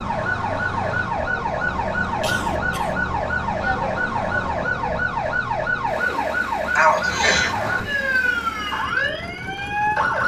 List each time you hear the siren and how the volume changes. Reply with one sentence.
The siren can be heard from 0.0 to 10.2 s, at a steady volume.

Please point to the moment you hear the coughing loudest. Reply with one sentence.
The loudest moment of the coughing is at 7 seconds.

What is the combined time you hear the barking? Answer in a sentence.
The barking can't be heard in this clip.